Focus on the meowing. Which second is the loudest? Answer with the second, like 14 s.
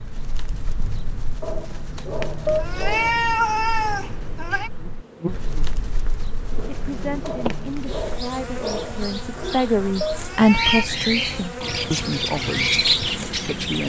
3 s.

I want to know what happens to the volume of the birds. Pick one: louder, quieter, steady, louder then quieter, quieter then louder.
louder.